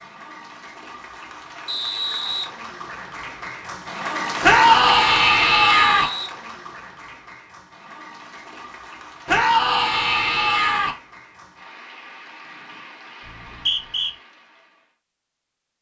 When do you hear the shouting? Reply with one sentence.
You can hear the shouting from 4.4 to 6.1 s and from 9.2 to 10.9 s.